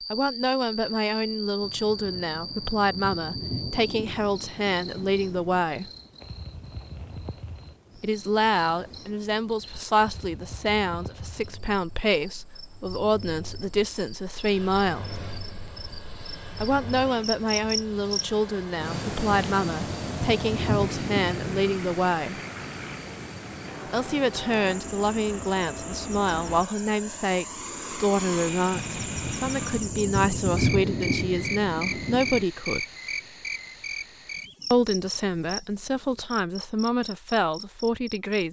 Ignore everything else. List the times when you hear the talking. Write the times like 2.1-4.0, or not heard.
0.1-5.9, 8.0-15.1, 16.6-22.4, 23.9-32.9, 34.7-38.4.